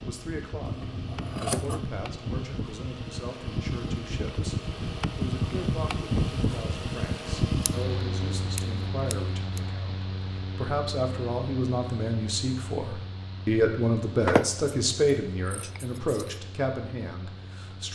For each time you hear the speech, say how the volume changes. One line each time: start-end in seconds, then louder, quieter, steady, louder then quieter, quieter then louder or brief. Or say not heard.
0.0-17.9 louder.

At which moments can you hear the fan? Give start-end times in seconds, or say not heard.
0.0-17.9.